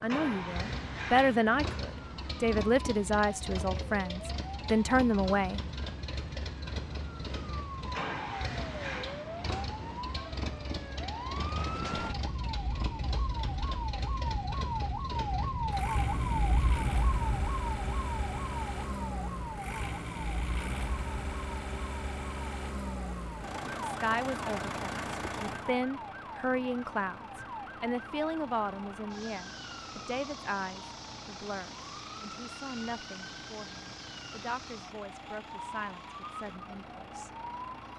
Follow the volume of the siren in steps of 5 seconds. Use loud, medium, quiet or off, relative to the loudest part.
medium, medium, loud, loud, medium, medium, medium, medium.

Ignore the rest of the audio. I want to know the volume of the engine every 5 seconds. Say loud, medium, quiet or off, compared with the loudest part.
loud, loud, loud, loud, loud, medium, medium, medium.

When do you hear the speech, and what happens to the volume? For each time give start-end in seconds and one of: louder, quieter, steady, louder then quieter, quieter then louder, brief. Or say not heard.
0.0-5.6 quieter then louder
23.8-37.4 quieter.